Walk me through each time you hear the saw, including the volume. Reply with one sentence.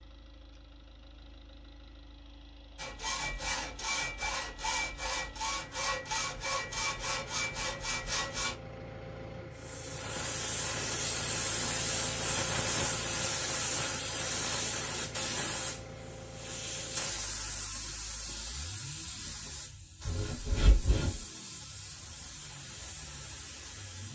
You can hear the saw from 2.8 to 8.6 s, at a steady volume; and briefly from 20.0 to 21.2 s.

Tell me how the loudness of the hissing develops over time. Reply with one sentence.
The loudness of the hissing goes down.